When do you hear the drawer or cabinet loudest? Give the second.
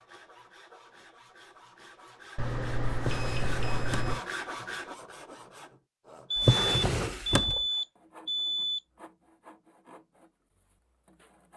7 s.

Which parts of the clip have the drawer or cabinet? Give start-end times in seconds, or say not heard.
3.0-4.2, 6.3-7.6.